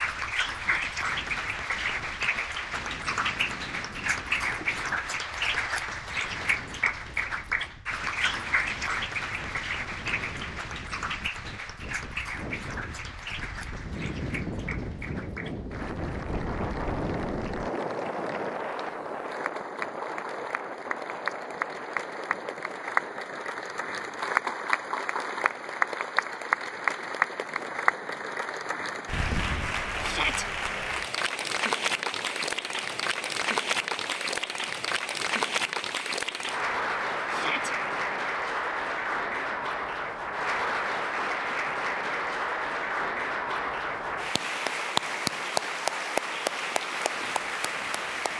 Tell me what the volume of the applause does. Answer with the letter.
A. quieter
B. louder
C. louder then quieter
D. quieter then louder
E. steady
D.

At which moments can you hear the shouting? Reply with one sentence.
You can hear the shouting from 0.6 to 1.0 s, from 30.0 to 30.4 s and from 37.3 to 37.8 s.